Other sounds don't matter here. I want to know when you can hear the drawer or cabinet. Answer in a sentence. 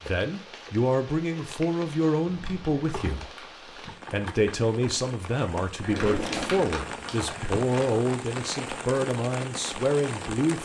The drawer or cabinet can be heard from 2.2 to 3.2 s and from 5.8 to 7.3 s.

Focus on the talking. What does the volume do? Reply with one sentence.
The loudness of the talking stays about the same.